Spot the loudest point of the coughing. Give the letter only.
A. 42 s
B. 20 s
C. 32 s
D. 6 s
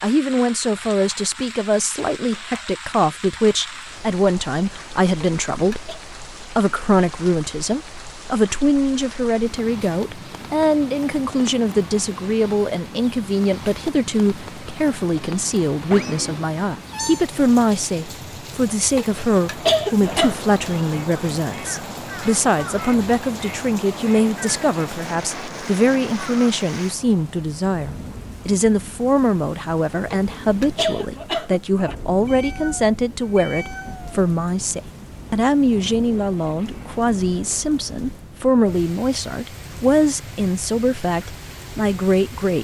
B.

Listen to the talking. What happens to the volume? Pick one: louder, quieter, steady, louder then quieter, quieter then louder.
steady.